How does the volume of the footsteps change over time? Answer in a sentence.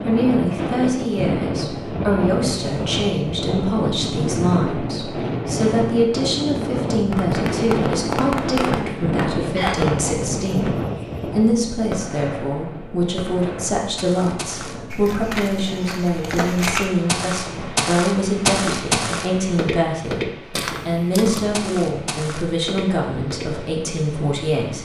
The loudness of the footsteps goes up, then down.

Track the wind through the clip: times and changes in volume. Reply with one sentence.
The wind can be heard from 0.0 to 24.8 s, getting quieter.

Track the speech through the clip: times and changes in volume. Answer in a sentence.
The speech can be heard from 0.1 to 24.8 s, at a steady volume.